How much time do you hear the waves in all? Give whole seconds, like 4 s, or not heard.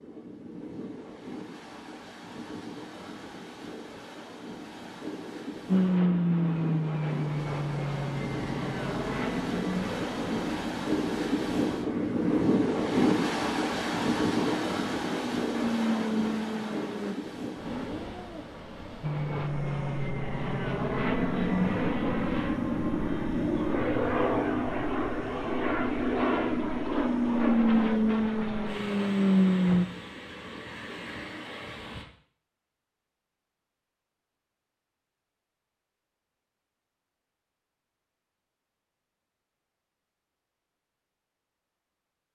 32 s.